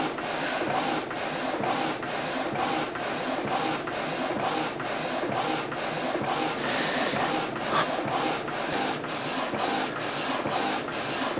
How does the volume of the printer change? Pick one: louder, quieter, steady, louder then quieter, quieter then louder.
steady.